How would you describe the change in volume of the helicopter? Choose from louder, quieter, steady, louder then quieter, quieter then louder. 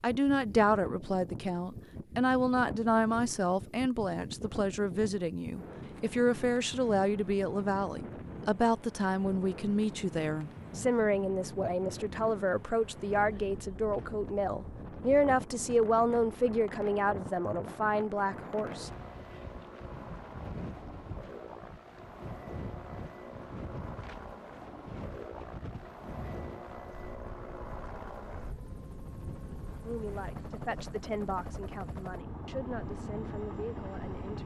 louder.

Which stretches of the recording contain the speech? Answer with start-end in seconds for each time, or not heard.
0.0-18.9, 29.9-34.4.